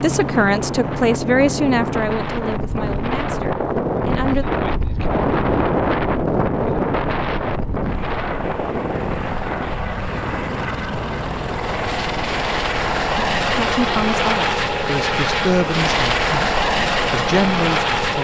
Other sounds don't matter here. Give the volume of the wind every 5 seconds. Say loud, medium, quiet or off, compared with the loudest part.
loud, loud, medium, quiet.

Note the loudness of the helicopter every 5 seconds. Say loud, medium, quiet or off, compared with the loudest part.
medium, medium, loud, loud.